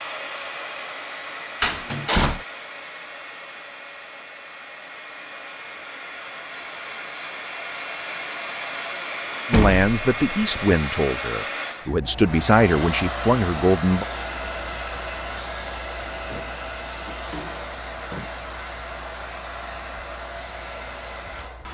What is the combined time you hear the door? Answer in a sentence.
The door can be heard for 4 seconds in total.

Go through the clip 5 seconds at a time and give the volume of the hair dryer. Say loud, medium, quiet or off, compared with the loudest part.
medium, loud, loud, loud, medium.